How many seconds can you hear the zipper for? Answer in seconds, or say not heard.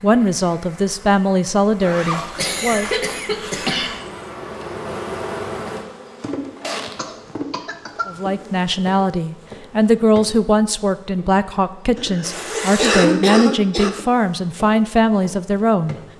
3 s.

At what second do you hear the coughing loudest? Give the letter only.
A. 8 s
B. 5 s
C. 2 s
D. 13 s
D.